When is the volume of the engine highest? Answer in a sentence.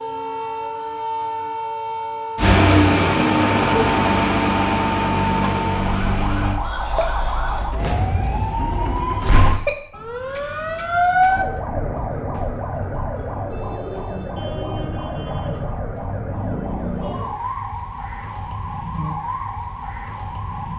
The volume of the engine peaks at 3 seconds.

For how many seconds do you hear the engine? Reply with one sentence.
The engine can be heard for 4 seconds in total.